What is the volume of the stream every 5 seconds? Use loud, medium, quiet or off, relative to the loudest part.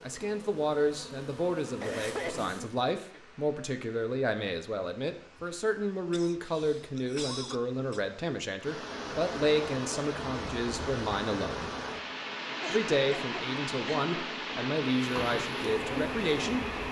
quiet, medium, loud, loud.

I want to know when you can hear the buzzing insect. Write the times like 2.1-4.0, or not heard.
0.0-2.6, 14.9-16.8.